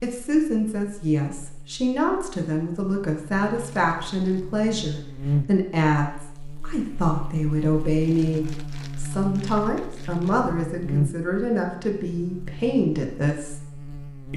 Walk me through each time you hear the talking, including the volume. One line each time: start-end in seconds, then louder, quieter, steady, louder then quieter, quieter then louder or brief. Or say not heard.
0.0-13.6 steady.